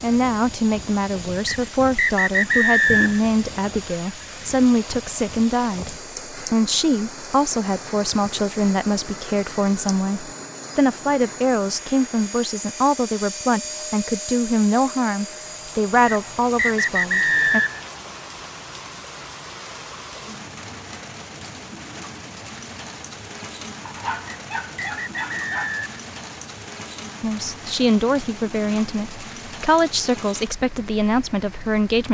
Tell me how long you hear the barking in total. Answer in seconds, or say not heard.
2 s.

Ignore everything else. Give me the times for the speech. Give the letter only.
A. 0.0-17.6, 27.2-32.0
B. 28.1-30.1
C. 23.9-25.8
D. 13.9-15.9
A.